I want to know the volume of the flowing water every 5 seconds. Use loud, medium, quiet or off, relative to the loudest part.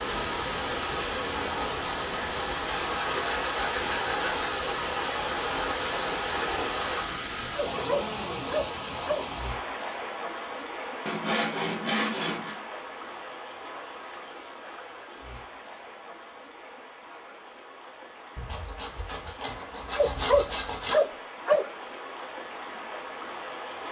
loud, loud, medium, quiet, medium.